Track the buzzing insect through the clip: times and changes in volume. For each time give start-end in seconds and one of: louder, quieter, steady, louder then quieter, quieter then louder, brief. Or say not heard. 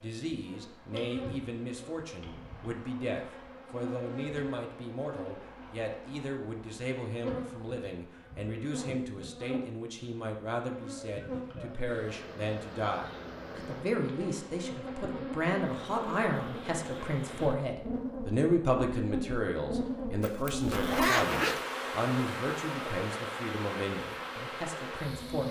0.0-25.4 louder.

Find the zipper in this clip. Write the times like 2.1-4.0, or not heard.
20.2-21.6.